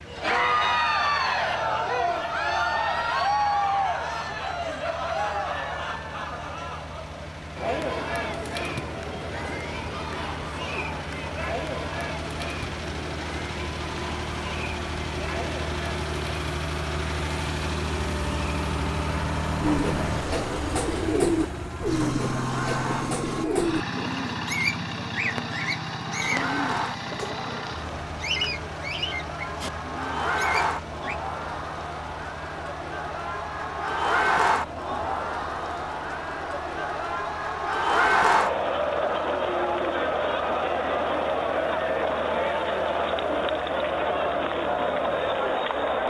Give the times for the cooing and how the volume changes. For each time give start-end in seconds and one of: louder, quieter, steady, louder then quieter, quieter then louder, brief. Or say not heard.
19.6-31.2 quieter.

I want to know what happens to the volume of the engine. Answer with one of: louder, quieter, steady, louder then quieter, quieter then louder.
louder then quieter.